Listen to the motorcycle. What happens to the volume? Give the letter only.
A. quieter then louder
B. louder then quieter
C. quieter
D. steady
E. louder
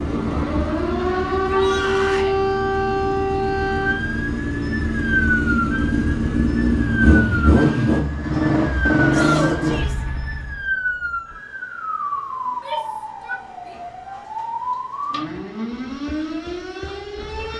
E.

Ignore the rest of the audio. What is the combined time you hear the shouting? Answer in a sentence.
The shouting can be heard for 3 seconds in total.